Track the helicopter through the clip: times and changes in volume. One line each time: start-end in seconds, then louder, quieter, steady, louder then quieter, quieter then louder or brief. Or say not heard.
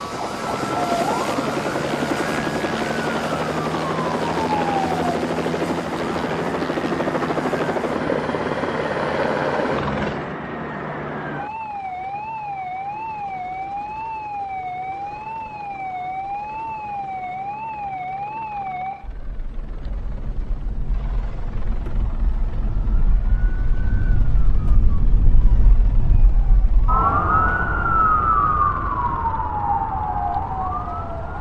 0.0-31.3 quieter.